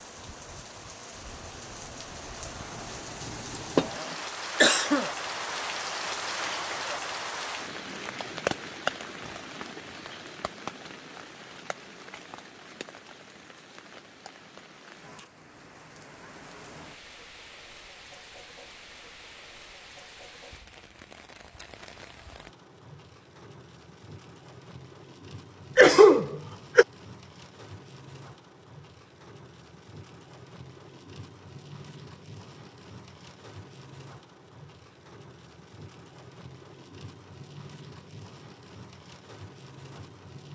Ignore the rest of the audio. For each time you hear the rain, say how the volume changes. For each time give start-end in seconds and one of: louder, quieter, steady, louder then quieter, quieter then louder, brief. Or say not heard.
0.0-40.5 quieter.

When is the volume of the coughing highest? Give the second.
26 s.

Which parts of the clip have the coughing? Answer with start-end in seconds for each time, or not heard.
3.5-5.0, 25.8-26.9.